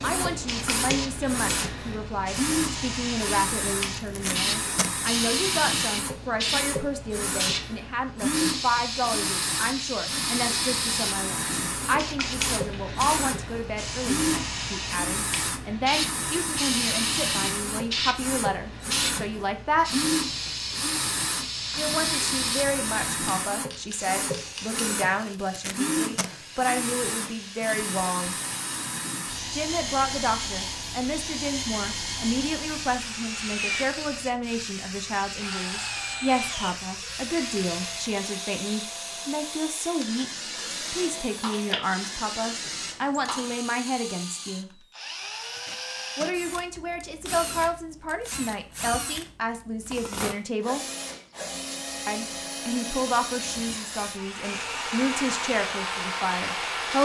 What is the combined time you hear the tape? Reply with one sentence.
You can hear the tape for 3 seconds altogether.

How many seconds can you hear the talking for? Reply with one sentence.
You can hear the talking for 51 seconds altogether.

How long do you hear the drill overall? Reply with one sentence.
You can hear the drill for 57 seconds altogether.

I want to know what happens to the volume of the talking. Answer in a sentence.
The volume of the talking stays about the same.